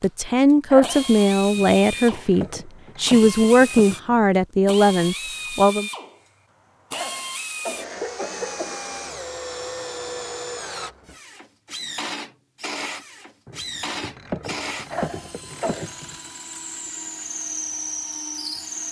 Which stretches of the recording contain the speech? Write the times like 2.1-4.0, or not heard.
0.0-5.9.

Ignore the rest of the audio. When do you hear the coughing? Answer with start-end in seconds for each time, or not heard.
0.7-1.1, 6.9-8.8, 14.9-15.9.